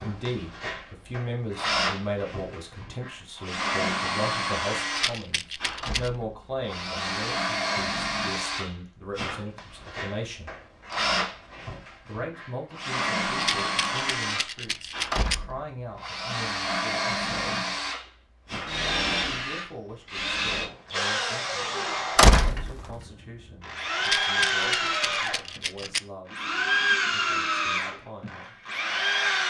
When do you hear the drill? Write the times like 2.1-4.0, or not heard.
0.0-29.4.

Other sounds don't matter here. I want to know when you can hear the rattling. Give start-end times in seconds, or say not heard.
5.0-6.1, 13.3-15.3, 24.0-26.0.